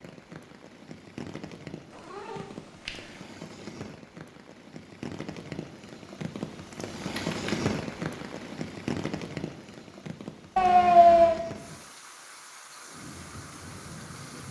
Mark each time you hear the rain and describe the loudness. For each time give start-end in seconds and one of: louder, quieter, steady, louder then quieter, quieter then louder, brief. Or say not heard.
0.0-14.4 louder then quieter.